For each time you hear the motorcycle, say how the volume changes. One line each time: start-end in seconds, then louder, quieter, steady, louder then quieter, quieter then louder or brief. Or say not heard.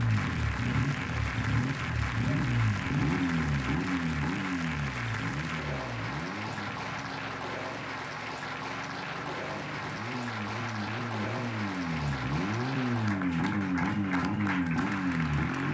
0.0-15.6 quieter then louder.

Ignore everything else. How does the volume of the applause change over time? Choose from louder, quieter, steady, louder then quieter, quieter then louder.
steady.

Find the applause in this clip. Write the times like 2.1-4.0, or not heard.
0.0-15.6.